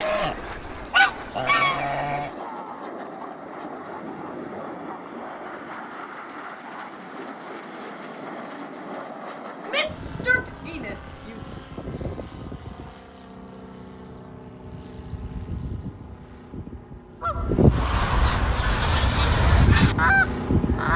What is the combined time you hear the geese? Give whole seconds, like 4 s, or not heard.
6 s.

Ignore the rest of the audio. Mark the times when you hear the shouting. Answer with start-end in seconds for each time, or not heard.
9.7-11.4.